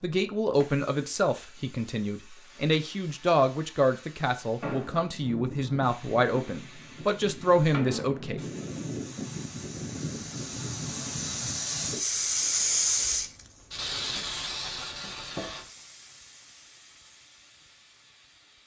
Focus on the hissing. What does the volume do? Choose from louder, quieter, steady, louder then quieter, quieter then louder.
louder then quieter.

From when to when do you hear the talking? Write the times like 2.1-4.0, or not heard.
0.0-8.4.